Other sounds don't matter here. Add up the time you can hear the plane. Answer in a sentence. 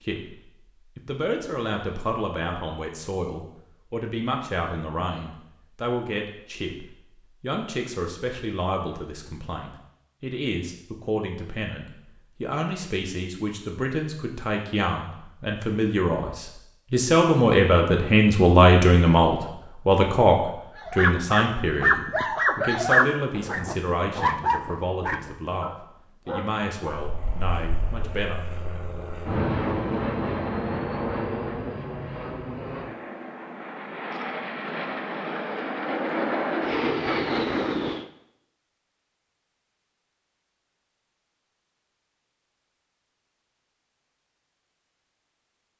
The plane can be heard for 11 seconds in total.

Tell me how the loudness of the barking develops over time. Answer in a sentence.
The volume of the barking goes down.